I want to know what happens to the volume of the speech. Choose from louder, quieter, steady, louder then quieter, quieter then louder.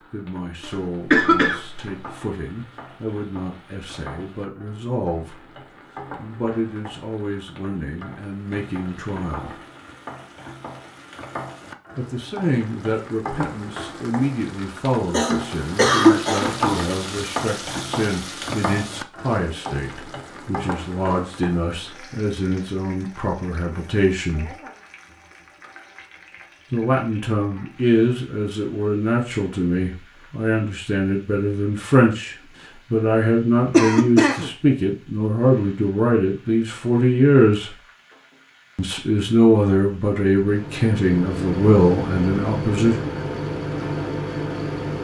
louder.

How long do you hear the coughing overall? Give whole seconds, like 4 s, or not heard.
4 s.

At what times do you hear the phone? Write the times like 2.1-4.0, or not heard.
not heard.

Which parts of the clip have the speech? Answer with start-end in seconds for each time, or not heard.
0.0-5.5, 6.2-9.6, 11.9-24.6, 26.7-37.7, 38.8-43.0.